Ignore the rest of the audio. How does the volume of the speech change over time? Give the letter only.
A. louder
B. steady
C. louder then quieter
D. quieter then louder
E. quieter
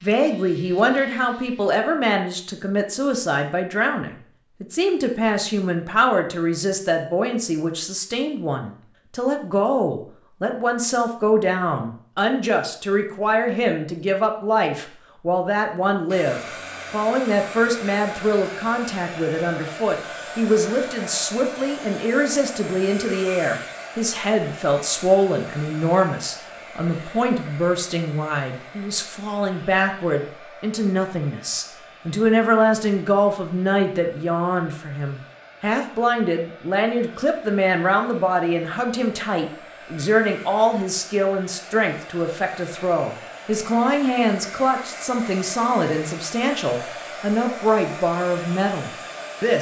B.